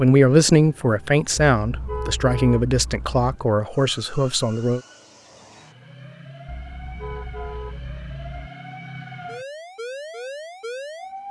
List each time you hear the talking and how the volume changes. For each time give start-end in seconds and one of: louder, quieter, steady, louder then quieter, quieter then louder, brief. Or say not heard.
0.0-4.8 quieter.